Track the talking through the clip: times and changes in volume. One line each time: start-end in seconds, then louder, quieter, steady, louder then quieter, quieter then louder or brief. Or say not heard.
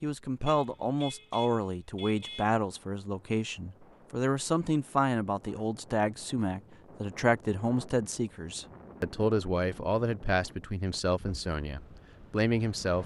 0.0-13.0 steady.